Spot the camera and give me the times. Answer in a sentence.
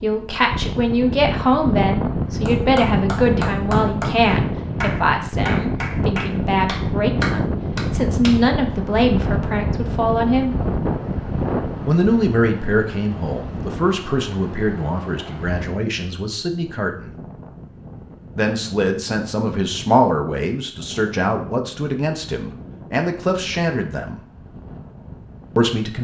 You can't hear the camera here.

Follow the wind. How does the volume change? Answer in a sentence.
The volume of the wind goes down.